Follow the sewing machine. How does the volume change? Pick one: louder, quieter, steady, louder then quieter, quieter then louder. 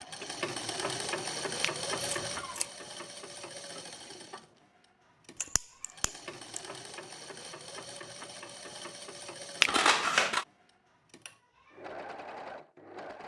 quieter.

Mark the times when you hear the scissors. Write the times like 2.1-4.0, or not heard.
2.2-2.7, 5.4-6.6, 9.7-10.4.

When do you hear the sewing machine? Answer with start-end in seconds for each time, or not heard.
0.0-13.2.